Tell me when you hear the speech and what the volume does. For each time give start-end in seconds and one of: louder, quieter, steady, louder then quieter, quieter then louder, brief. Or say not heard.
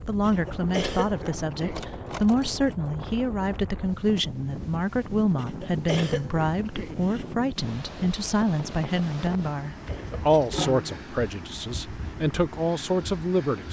0.1-13.6 steady.